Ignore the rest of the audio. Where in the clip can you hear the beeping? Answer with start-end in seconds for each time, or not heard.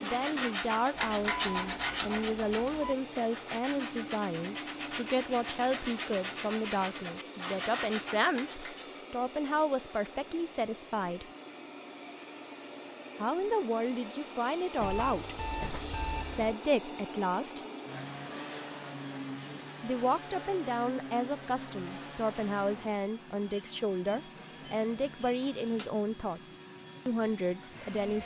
1.1-3.0, 14.8-16.6, 23.5-25.4.